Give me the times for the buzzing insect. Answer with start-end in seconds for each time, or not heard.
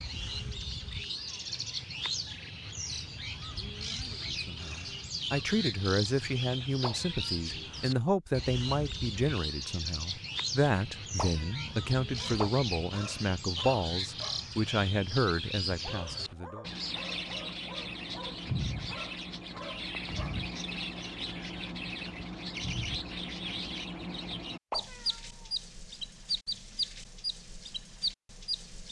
not heard.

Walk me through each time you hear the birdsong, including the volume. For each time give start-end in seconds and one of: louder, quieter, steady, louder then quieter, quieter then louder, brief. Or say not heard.
0.0-28.8 steady.